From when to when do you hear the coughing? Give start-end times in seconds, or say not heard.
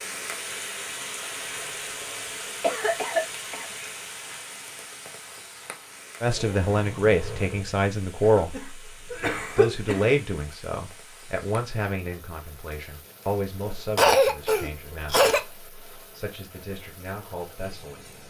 1.4-3.8, 8.2-10.2, 13.9-15.4.